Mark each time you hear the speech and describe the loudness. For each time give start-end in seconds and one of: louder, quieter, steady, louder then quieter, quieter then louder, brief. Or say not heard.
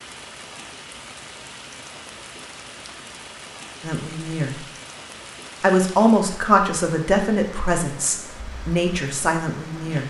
3.8-4.7 brief
5.6-10.0 quieter.